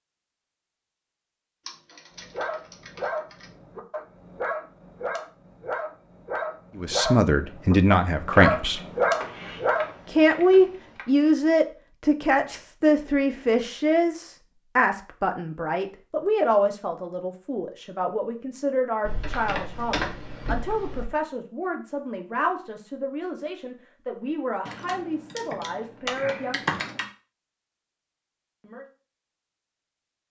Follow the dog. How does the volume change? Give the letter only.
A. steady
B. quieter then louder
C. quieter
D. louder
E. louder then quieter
D.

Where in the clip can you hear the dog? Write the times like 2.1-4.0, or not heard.
2.1-10.2.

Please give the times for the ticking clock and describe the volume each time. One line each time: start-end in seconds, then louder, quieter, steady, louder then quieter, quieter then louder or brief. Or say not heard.
not heard.